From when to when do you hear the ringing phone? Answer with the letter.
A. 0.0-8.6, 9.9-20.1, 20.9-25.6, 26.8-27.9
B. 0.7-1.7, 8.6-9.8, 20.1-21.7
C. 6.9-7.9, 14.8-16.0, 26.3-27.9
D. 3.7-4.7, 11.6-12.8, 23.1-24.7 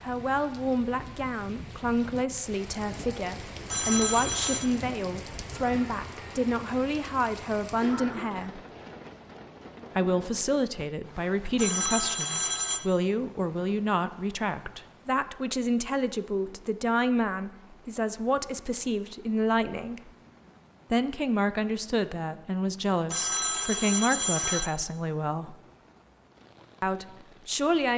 D.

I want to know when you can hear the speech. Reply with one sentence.
You can hear the speech from 0.0 to 8.6 s, from 9.9 to 20.1 s, from 20.9 to 25.6 s and from 26.8 to 27.9 s.